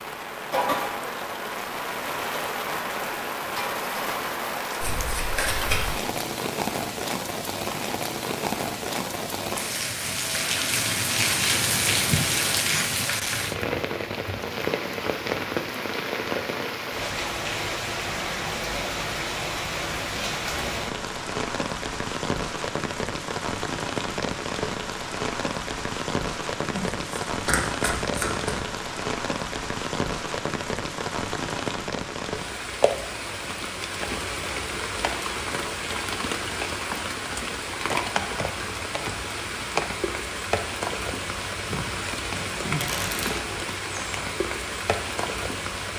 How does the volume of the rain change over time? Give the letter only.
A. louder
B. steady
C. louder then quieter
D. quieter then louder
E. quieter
B.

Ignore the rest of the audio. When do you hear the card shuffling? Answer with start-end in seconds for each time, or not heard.
4.8-6.0, 26.7-28.6, 41.6-43.4.